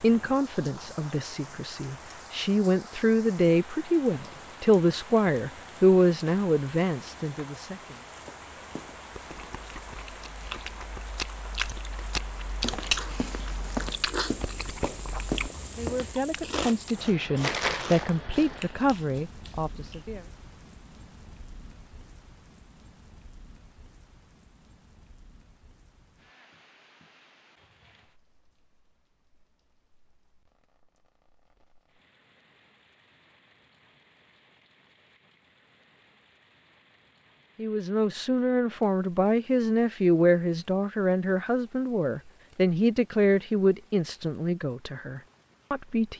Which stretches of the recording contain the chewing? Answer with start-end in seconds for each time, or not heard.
8.9-20.1.